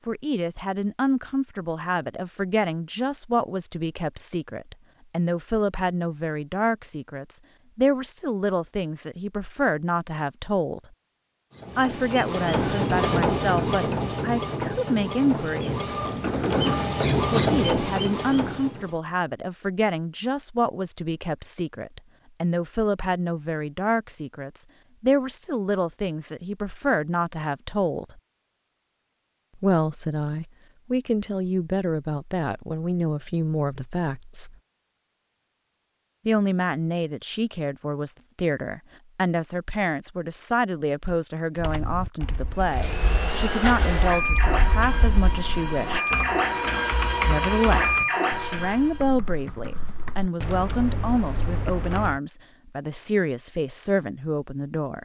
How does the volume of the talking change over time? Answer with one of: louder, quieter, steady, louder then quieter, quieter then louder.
steady.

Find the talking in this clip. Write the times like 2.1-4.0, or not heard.
0.1-10.8, 11.8-15.9, 17.3-28.2, 29.6-34.5, 36.2-46.1, 47.2-55.0.